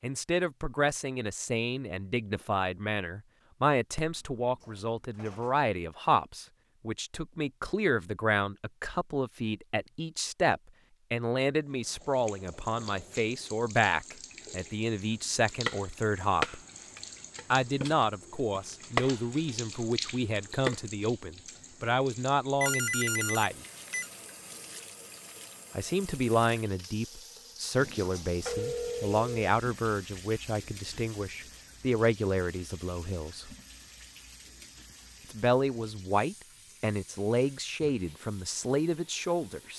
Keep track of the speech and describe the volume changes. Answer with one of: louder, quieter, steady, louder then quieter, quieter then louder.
steady.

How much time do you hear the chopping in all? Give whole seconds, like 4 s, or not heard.
5 s.